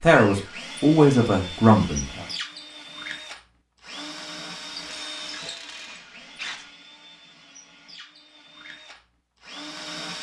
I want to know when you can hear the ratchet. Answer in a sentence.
You can hear the ratchet from 4.8 to 6.7 s.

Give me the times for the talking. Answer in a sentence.
You can hear the talking from 0.0 to 2.2 s.